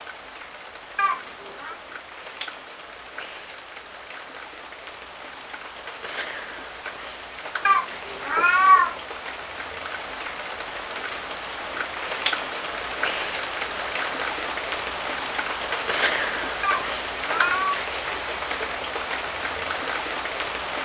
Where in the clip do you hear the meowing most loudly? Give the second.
9 s.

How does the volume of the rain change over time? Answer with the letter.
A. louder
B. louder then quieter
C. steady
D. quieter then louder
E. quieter
A.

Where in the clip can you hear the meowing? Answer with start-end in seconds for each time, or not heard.
0.9-1.8, 7.7-9.0, 16.6-17.8.